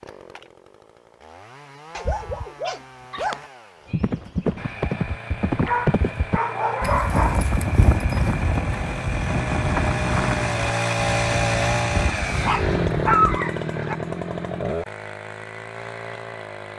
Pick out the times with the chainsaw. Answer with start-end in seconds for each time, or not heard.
0.0-16.7.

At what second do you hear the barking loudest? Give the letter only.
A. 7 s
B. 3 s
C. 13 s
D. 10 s
C.